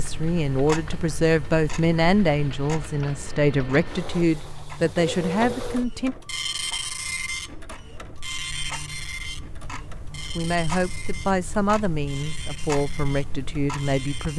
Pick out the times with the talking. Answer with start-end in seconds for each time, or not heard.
0.0-6.2, 10.3-14.3.